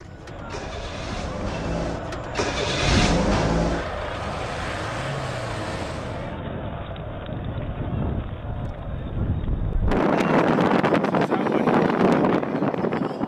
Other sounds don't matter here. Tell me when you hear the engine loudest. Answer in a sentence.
The volume of the engine peaks at 3 seconds.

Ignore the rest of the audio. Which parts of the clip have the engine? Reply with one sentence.
The engine can be heard from 0.0 to 6.3 s.